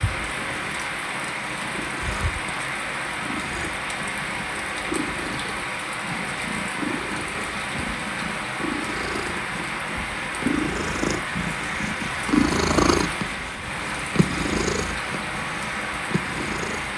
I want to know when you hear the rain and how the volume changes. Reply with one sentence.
The rain can be heard from 0.0 to 16.9 s, at a steady volume.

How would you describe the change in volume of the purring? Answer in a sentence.
The loudness of the purring goes up, then down.